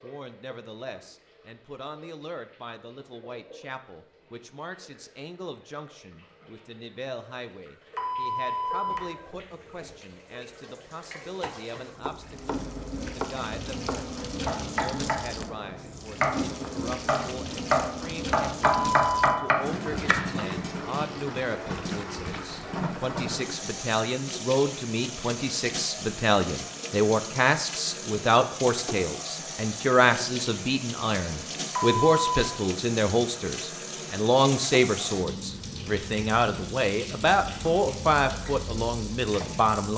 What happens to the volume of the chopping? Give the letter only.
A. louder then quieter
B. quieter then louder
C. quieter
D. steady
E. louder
E.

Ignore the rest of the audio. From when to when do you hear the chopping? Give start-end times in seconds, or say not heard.
11.3-15.3, 16.1-20.3.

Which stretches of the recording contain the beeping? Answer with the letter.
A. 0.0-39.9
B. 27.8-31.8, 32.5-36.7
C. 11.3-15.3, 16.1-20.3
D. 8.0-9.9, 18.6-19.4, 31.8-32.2
D.